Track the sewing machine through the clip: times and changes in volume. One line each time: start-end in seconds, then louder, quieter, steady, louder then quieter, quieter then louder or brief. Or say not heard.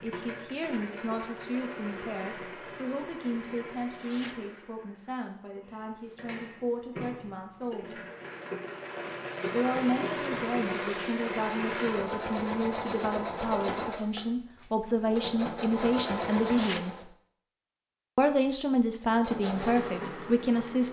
0.0-17.1 quieter then louder
19.0-20.8 brief.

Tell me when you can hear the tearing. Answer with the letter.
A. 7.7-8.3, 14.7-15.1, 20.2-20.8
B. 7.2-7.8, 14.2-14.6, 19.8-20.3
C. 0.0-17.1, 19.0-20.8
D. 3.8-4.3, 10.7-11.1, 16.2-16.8
D.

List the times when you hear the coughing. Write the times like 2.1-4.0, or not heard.
not heard.